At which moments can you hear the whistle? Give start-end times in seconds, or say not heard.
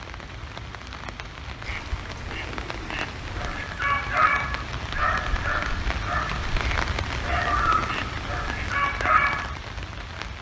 not heard.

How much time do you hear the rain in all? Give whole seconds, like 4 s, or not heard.
10 s.